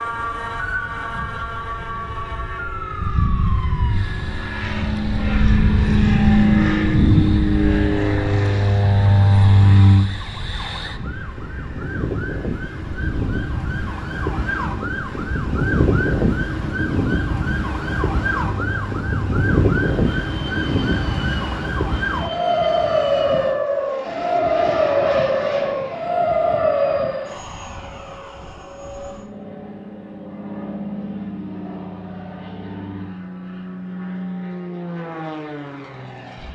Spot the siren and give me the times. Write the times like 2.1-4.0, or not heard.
0.0-27.4.